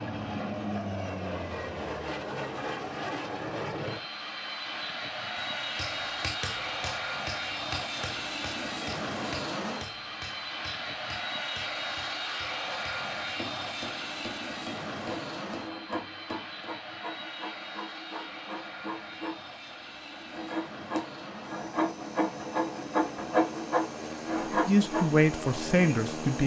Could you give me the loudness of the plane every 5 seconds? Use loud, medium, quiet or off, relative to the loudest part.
loud, loud, loud, medium, medium, loud.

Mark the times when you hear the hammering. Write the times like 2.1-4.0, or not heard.
5.3-16.8.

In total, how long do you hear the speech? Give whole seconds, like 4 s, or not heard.
2 s.